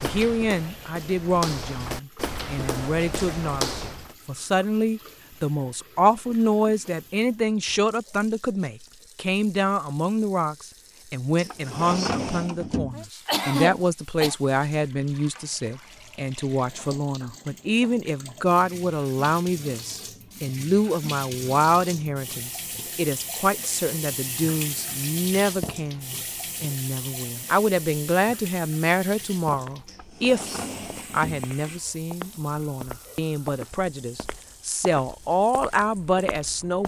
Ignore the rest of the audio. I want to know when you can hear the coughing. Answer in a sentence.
You can hear the coughing from 13.2 to 14.3 s.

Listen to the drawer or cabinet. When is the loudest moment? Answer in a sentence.
The loudest moment of the drawer or cabinet is at 12 seconds.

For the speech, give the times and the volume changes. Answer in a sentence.
You can hear the speech from 0.0 to 36.8 s, at a steady volume.